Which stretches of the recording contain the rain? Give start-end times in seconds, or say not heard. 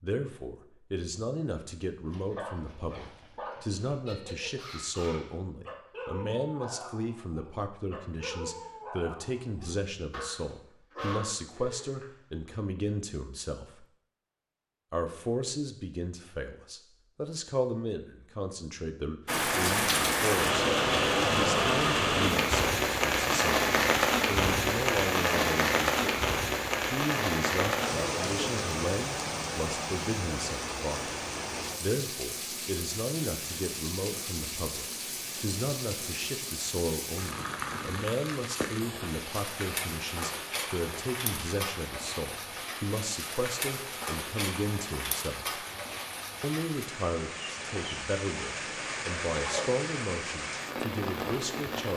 19.2-51.9.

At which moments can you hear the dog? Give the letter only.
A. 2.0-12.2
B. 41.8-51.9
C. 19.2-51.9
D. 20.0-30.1
A.